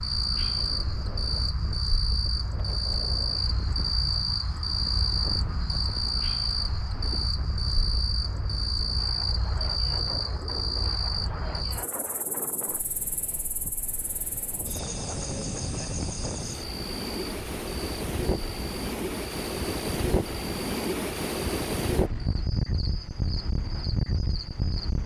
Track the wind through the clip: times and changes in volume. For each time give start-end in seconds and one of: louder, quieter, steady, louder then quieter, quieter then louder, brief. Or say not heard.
0.2-25.0 louder.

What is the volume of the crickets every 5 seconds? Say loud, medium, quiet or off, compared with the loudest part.
loud, loud, medium, medium, quiet.